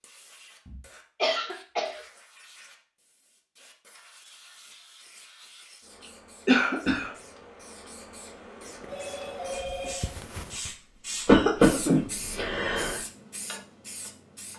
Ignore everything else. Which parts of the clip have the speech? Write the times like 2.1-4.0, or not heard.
not heard.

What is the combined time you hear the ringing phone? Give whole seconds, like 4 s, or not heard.
2 s.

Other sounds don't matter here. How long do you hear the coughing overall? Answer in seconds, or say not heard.
4 s.